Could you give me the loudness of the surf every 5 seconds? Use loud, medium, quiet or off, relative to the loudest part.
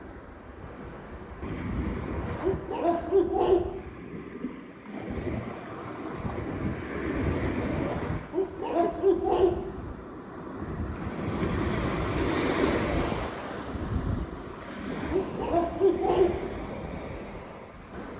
medium, loud, loud, medium.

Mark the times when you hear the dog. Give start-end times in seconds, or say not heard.
2.4-3.9, 8.3-9.9, 15.1-16.6.